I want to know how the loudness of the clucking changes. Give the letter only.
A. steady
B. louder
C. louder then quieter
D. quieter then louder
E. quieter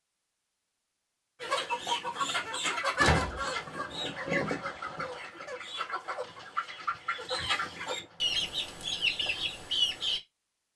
D.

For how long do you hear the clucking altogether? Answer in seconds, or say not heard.
9 s.